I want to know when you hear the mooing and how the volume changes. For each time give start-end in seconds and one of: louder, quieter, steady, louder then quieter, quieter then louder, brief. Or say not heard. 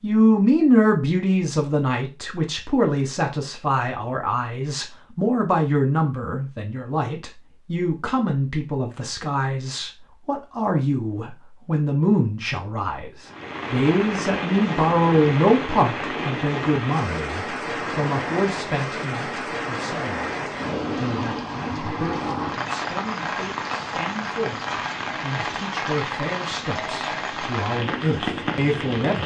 not heard.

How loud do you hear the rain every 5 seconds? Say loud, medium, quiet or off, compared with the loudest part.
off, off, loud, loud, loud, loud.